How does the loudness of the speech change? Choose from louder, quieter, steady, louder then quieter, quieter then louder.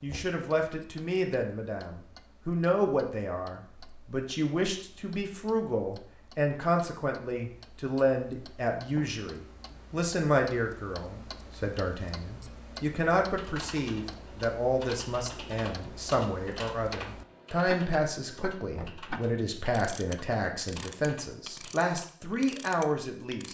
steady.